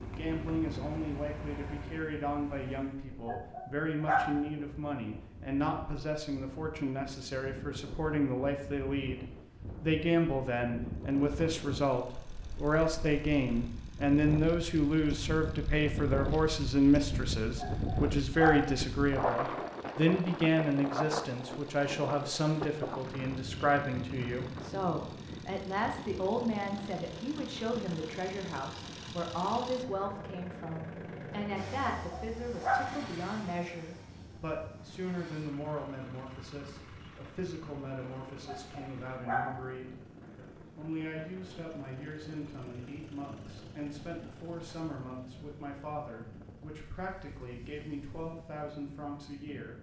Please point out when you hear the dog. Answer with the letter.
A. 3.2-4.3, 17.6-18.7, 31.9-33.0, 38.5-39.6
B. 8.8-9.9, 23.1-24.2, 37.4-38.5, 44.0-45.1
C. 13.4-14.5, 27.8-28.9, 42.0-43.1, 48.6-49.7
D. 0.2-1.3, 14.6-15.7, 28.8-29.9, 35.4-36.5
A.